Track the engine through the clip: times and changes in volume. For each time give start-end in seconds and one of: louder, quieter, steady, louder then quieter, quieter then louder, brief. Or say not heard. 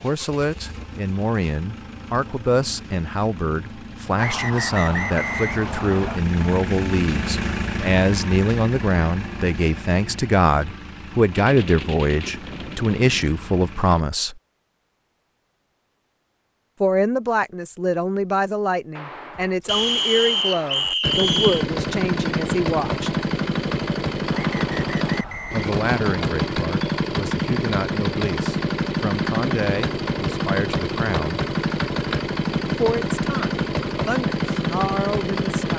0.0-14.1 louder then quieter
21.0-35.7 steady.